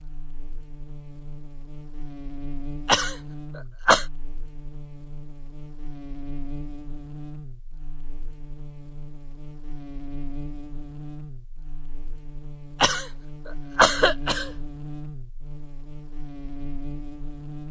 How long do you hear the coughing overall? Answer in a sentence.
You can hear the coughing for 3 seconds altogether.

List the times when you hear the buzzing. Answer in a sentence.
You can hear the buzzing from 0.0 to 17.6 s.